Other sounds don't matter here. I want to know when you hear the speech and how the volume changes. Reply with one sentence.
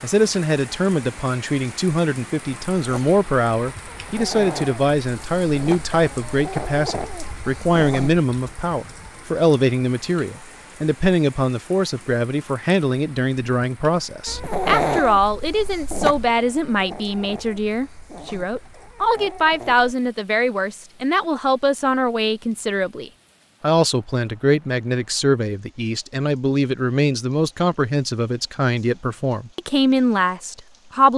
You can hear the speech from 0.0 to 31.1 s, at a steady volume.